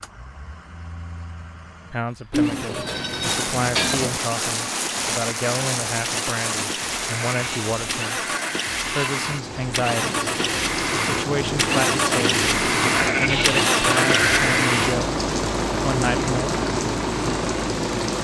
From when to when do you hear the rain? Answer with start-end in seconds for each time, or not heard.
3.2-18.1.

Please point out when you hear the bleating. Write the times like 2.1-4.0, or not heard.
2.3-4.2, 7.0-9.1, 12.9-14.7.